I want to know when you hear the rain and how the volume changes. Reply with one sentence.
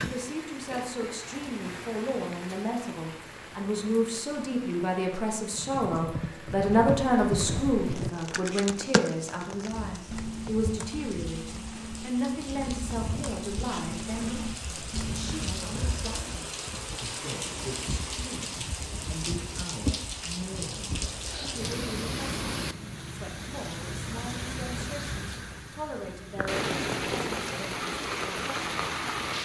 The rain can be heard from 0.0 to 29.3 s, getting louder.